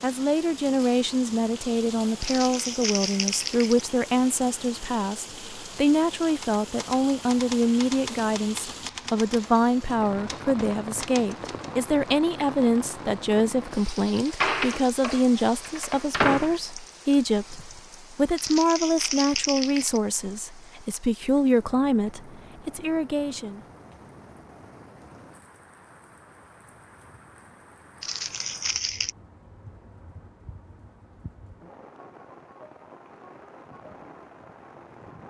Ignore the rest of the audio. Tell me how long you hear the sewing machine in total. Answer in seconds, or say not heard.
not heard.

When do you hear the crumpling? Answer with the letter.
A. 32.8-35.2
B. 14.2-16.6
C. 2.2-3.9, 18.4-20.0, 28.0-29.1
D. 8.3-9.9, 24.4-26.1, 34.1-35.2
C.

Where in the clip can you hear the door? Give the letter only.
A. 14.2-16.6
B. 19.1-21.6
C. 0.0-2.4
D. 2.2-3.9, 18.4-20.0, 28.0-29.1
A.